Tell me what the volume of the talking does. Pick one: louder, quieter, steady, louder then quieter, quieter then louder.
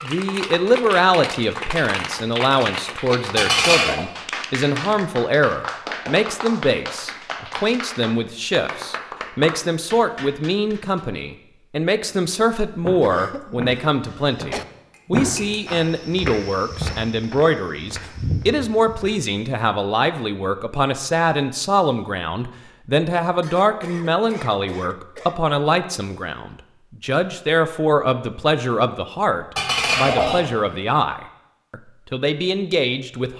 steady.